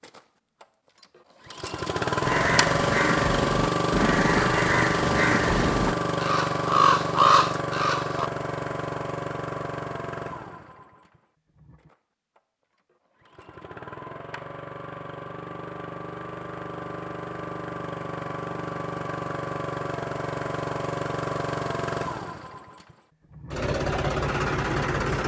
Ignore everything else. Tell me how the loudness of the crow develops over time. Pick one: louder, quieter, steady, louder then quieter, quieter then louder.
louder.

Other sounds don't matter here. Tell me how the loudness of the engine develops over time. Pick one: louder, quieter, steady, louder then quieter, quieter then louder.
quieter then louder.